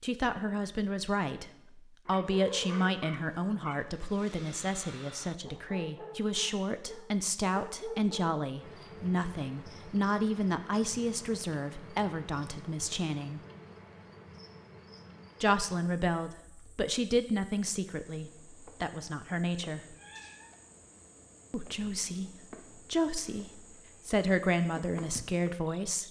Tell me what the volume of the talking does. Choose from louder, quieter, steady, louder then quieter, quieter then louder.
steady.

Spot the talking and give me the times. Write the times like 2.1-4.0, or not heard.
0.0-13.4, 15.4-19.9, 21.5-26.0.